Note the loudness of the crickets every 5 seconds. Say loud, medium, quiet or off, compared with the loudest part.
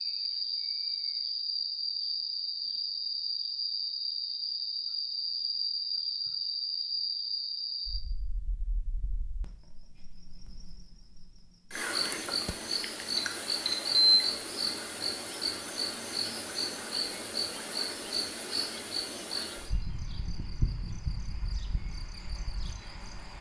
loud, loud, loud, loud, medium.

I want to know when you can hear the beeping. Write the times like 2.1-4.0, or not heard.
13.2-14.2.